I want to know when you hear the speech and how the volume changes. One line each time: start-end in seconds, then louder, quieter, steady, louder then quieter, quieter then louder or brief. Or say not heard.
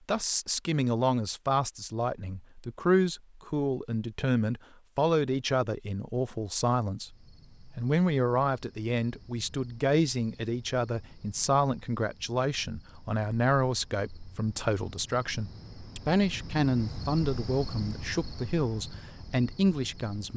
0.1-20.3 steady.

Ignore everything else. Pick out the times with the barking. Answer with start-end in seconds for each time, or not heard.
not heard.